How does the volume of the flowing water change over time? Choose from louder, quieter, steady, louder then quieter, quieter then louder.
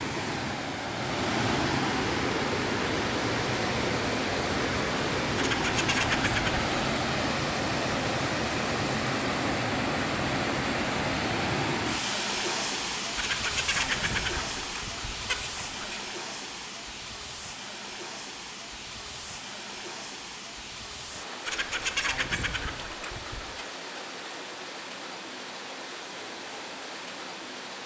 quieter.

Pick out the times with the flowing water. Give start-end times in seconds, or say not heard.
0.0-27.8.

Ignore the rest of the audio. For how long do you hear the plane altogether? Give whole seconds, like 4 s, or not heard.
not heard.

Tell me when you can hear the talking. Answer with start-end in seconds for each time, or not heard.
not heard.